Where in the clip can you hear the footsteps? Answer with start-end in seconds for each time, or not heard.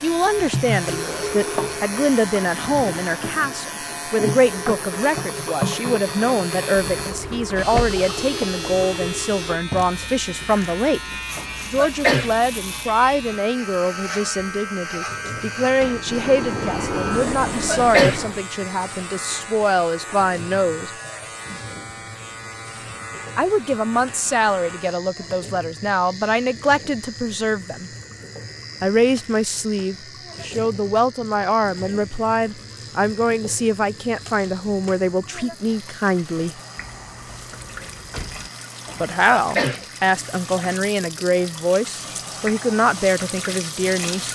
not heard.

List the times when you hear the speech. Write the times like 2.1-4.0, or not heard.
0.0-11.0, 11.7-20.9, 23.4-27.9, 28.8-36.6, 39.0-44.3.